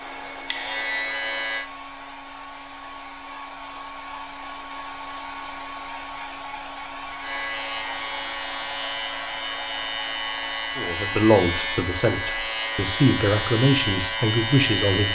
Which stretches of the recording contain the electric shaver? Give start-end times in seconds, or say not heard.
0.0-1.7, 7.2-15.0.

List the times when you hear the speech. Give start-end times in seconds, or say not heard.
10.8-15.0.